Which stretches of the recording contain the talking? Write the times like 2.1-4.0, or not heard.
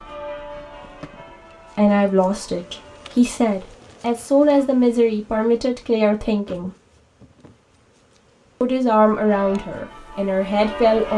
1.8-6.7, 8.6-11.1.